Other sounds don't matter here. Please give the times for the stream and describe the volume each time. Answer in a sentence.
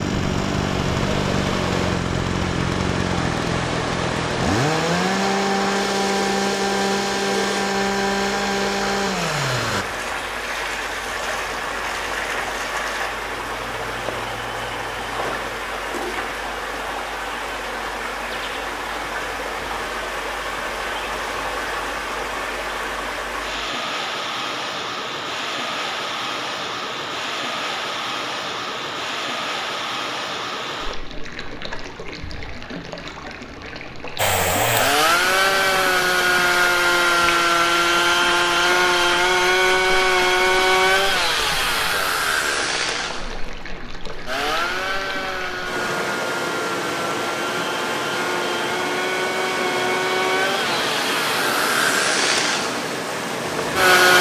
You can hear the stream from 0.0 to 54.1 s, getting quieter then louder.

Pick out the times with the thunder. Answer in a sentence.
The thunder can't be heard in this clip.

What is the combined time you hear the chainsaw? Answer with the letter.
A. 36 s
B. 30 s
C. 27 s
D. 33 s
B.